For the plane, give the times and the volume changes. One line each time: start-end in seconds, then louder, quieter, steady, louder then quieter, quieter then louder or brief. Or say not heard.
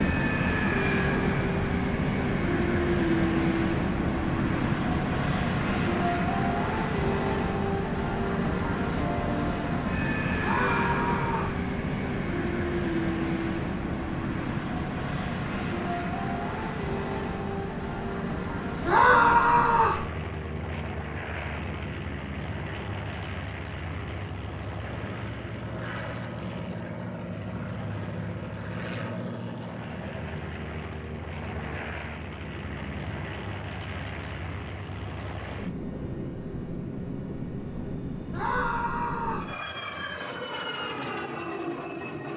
0.0-42.3 quieter.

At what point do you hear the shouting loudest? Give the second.
19 s.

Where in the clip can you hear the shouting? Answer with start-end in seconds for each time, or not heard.
10.3-11.6, 18.9-20.0, 38.3-39.5.